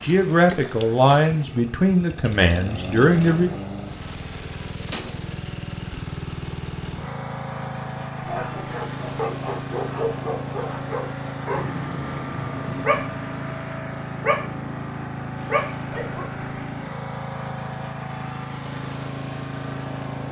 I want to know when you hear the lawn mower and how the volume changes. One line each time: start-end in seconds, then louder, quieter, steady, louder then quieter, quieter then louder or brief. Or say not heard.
0.0-20.2 steady.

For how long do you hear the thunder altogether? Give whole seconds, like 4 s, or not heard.
2 s.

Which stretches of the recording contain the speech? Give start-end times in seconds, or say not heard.
0.0-3.5.